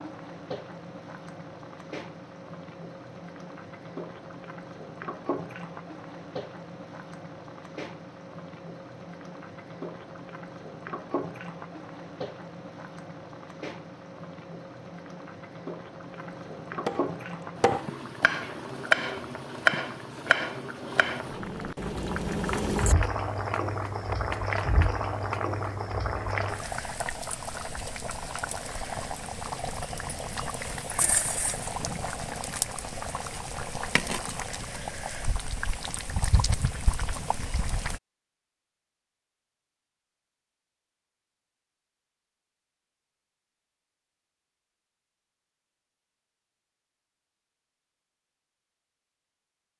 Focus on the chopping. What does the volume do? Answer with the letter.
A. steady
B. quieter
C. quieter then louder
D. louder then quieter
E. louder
D.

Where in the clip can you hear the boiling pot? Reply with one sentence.
You can hear the boiling pot from 0.0 to 38.0 s.